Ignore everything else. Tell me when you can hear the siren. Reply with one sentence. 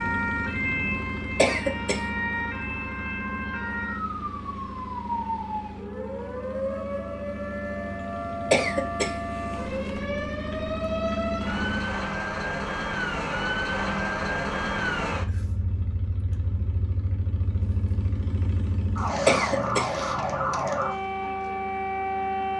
The siren can be heard from 0.0 to 22.5 s.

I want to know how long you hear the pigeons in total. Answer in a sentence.
The pigeons can't be heard in this clip.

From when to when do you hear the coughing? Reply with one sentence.
The coughing can be heard from 1.4 to 2.0 s, from 8.5 to 9.1 s and from 19.2 to 19.9 s.